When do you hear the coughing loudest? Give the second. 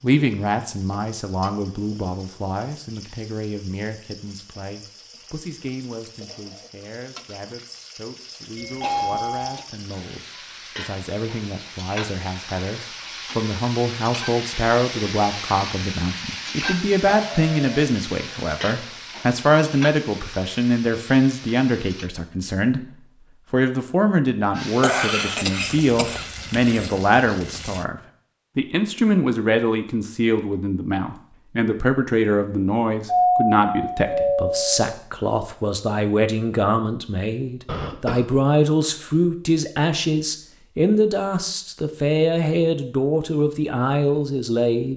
25 s.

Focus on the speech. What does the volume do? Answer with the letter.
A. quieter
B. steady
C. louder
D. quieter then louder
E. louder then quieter
C.